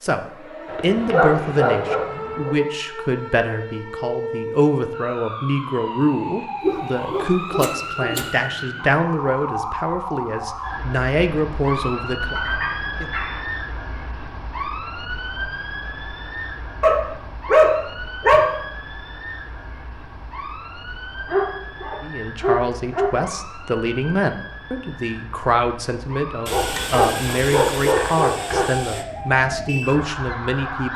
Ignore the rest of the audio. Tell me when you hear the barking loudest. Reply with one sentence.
The loudest moment of the barking is at 18 seconds.